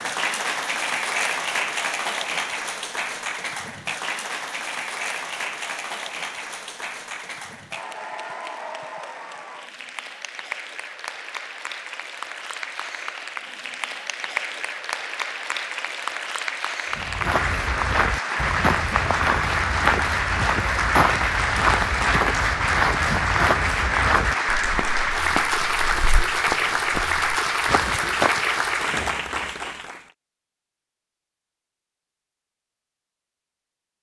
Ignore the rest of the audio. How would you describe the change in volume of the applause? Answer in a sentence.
The loudness of the applause goes down, then up.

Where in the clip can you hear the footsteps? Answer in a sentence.
The footsteps can be heard from 16.9 to 28.6 s.